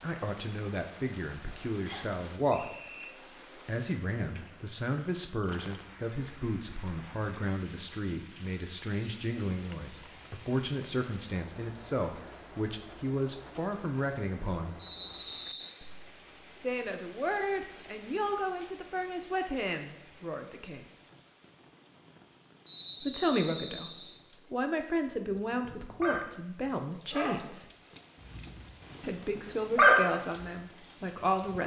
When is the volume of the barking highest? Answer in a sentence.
The volume of the barking peaks at 30 seconds.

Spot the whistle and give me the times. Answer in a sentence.
You can hear the whistle from 1.9 to 3.1 s, from 14.8 to 15.8 s and from 22.6 to 24.1 s.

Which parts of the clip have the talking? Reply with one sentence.
You can hear the talking from 0.0 to 2.7 s, from 3.6 to 14.8 s, from 16.6 to 20.9 s, from 23.0 to 23.9 s, from 24.5 to 27.6 s and from 29.0 to 31.6 s.